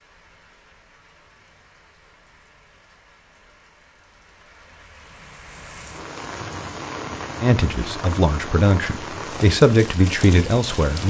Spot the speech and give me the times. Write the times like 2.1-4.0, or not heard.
7.4-11.0.